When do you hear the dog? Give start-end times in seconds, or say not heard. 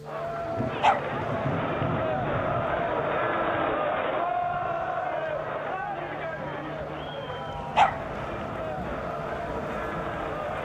0.3-1.6, 7.3-8.5.